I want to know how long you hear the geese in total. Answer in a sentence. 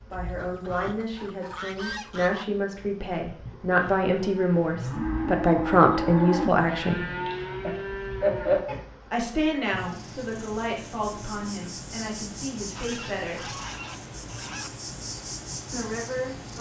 The geese can be heard for 4 seconds in total.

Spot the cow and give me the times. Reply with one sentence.
You can hear the cow from 3.7 to 8.8 s.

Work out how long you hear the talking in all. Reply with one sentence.
The talking can be heard for 12 seconds in total.